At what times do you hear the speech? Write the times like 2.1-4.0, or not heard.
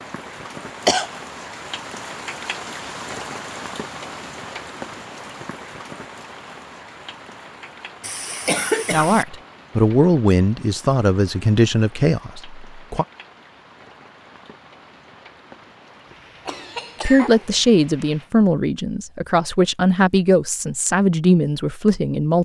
8.9-13.1, 17.1-22.4.